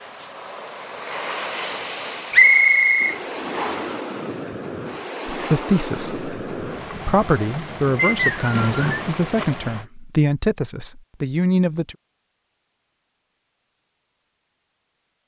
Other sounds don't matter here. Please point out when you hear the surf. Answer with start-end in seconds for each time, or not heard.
0.0-9.8.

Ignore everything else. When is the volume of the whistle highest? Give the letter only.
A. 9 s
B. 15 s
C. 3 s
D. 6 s
C.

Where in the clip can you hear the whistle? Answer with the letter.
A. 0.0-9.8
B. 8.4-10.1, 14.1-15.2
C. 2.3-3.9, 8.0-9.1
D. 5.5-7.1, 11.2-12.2
C.